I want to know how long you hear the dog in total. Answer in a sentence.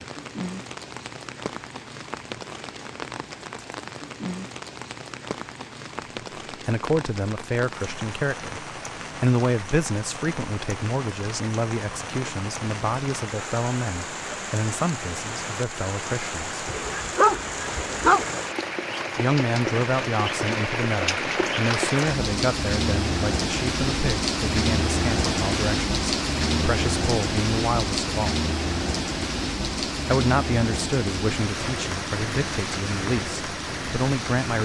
The dog can be heard for 2 seconds in total.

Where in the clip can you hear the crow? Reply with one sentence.
The crow can't be heard in this clip.